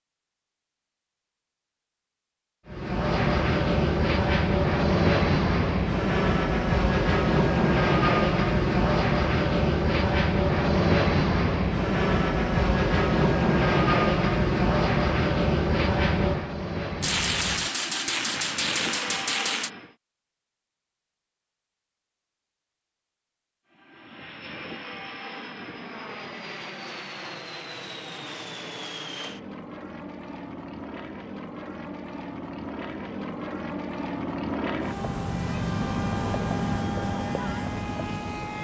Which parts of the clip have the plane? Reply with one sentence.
You can hear the plane from 2.6 to 19.9 s and from 23.7 to 38.5 s.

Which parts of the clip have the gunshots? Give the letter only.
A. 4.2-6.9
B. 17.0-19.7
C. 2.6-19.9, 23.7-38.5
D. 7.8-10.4
B.